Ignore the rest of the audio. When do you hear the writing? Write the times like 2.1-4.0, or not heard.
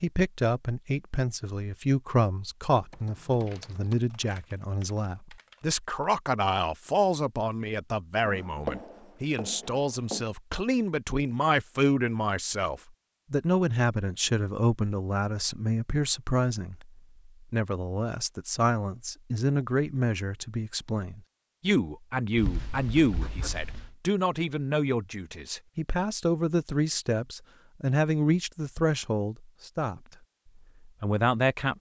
8.2-10.2, 22.4-23.9.